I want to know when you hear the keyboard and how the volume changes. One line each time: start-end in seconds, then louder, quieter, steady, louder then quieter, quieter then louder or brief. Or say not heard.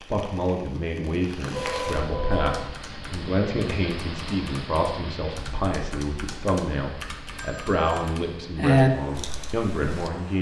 2.3-10.1 louder.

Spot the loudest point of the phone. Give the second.
2 s.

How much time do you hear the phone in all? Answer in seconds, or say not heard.
2 s.